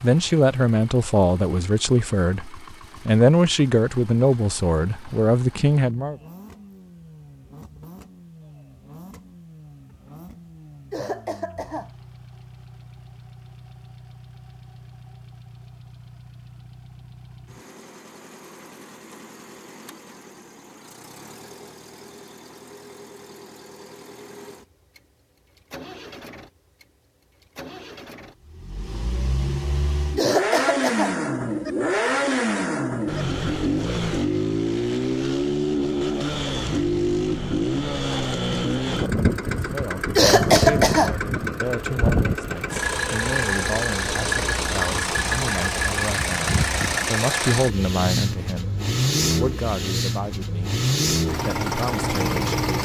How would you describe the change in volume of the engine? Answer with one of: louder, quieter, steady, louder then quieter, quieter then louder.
louder.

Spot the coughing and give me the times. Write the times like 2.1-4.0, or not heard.
10.9-11.9, 30.1-31.1, 40.1-41.1.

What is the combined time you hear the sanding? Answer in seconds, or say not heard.
not heard.